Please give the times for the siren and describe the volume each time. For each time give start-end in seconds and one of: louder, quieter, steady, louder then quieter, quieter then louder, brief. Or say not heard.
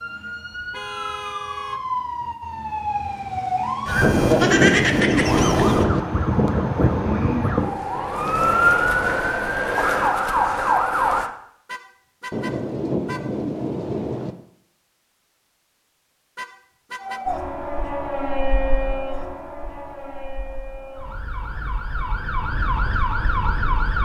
0.0-11.3 louder
17.0-24.0 quieter then louder.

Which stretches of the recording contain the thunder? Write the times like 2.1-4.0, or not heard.
4.0-6.0, 12.3-14.3.